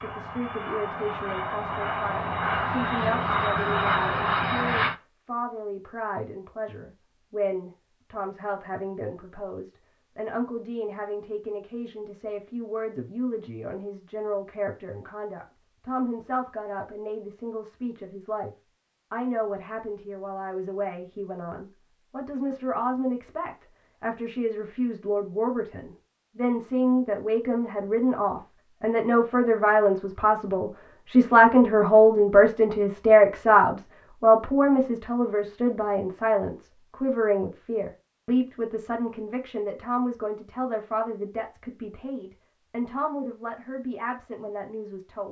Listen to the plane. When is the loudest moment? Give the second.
4 s.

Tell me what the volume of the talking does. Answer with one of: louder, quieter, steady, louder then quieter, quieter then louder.
louder then quieter.